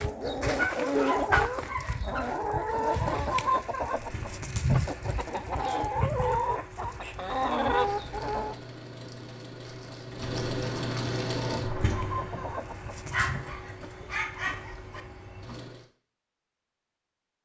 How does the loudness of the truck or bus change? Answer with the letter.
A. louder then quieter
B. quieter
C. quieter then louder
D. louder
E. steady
A.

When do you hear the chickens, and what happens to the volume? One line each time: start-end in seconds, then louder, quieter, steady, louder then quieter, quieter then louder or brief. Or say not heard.
0.0-8.6 steady
11.3-13.4 brief.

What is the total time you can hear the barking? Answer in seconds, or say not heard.
4 s.